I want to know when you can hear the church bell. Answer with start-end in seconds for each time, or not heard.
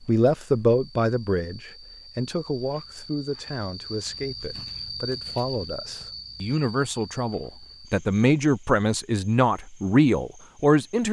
not heard.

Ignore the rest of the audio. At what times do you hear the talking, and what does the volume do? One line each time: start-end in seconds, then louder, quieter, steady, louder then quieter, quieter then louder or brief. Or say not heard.
0.1-11.0 quieter then louder.